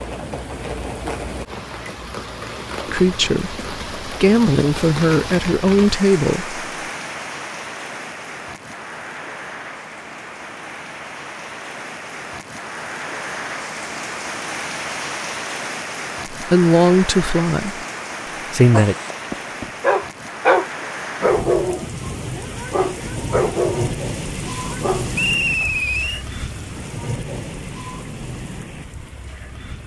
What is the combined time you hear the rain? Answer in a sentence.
The rain can be heard for 30 seconds in total.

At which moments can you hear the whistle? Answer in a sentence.
You can hear the whistle from 25.1 to 26.2 s.